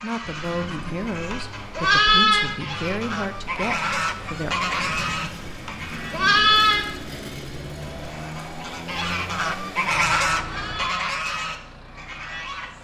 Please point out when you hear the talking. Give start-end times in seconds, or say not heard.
0.0-4.5.